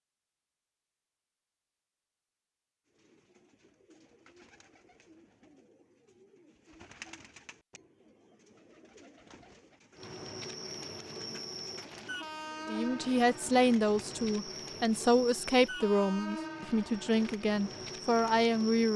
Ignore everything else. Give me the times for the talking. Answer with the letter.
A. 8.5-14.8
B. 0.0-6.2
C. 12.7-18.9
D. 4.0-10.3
C.